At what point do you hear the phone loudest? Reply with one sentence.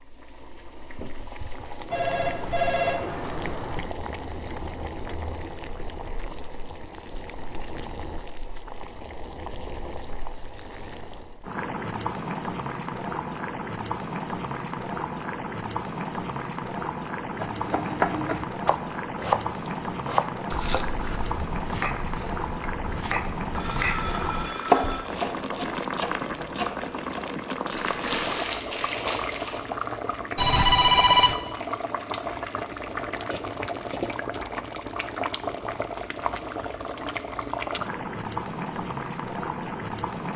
The loudest moment of the phone is at 31 seconds.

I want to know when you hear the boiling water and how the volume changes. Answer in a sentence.
The boiling water can be heard from 0.0 to 40.3 s, getting louder.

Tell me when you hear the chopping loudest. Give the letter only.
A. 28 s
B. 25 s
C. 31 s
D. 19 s
B.